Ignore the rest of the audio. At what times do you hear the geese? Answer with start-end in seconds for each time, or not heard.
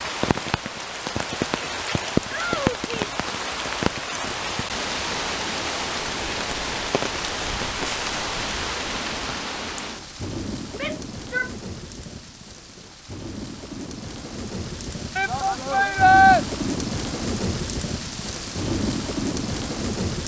not heard.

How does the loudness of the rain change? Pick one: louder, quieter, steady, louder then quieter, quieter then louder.
quieter then louder.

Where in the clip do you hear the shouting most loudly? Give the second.
16 s.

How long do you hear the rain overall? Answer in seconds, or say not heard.
20 s.